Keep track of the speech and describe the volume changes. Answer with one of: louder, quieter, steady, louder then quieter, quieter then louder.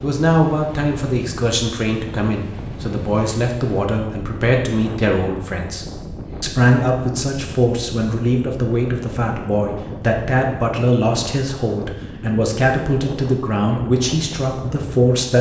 steady.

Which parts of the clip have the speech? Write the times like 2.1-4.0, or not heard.
0.0-15.3.